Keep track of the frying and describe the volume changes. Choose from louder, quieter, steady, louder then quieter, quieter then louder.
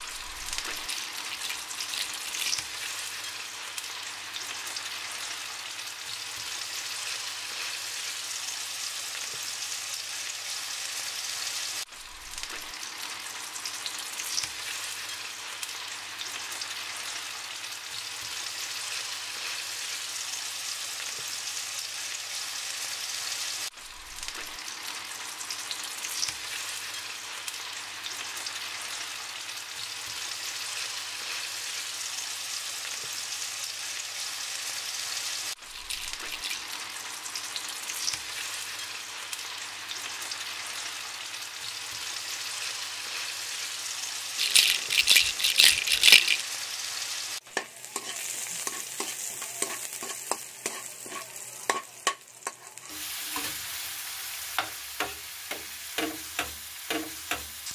steady.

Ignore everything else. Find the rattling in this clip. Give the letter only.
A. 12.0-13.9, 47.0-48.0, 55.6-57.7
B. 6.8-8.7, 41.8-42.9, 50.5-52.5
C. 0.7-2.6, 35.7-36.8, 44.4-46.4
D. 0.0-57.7
C.